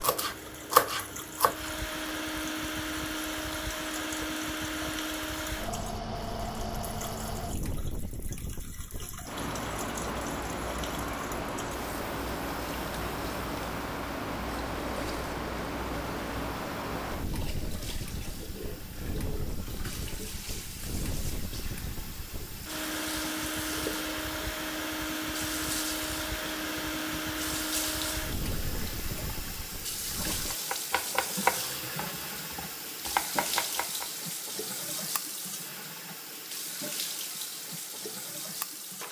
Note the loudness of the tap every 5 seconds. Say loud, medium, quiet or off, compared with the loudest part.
medium, medium, medium, medium, medium, loud, loud, loud.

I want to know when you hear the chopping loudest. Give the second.
1 s.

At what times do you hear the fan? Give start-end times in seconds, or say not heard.
0.1-30.6.